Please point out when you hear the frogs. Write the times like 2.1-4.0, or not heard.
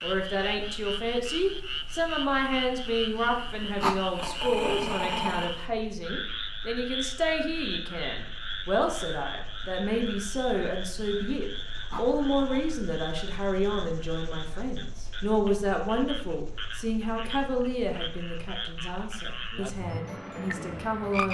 0.0-21.2.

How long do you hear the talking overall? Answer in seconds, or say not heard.
21 s.